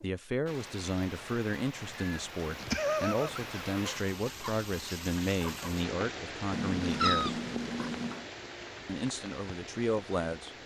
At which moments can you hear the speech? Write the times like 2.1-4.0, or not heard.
0.0-7.4, 8.8-10.6.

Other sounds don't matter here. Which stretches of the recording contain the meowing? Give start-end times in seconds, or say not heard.
1.9-3.5, 6.5-8.2.